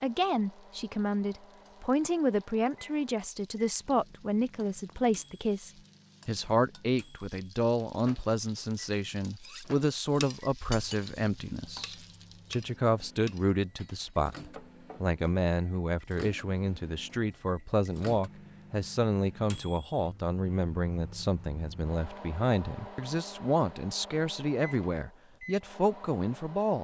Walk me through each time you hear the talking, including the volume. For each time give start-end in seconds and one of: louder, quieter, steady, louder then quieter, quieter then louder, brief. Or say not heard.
0.0-26.7 steady.